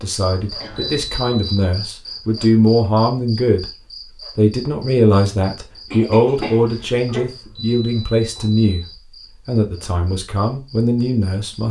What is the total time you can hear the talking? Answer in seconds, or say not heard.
10 s.